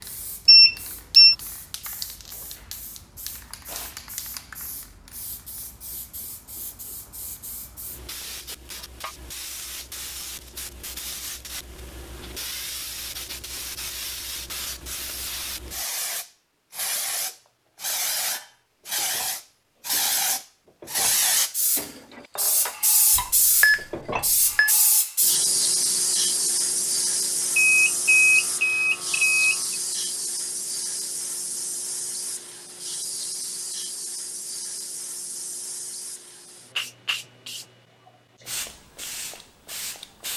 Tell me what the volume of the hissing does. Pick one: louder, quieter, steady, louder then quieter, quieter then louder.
louder then quieter.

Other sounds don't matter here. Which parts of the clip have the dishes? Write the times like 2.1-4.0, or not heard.
17.2-24.8.